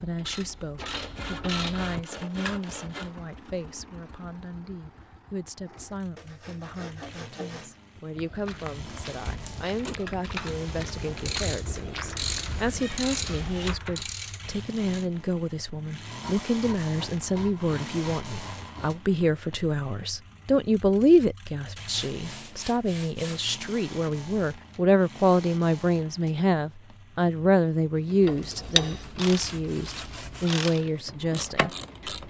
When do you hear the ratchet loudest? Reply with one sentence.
The loudest moment of the ratchet is at 29 seconds.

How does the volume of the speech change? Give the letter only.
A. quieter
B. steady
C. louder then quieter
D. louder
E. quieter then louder
D.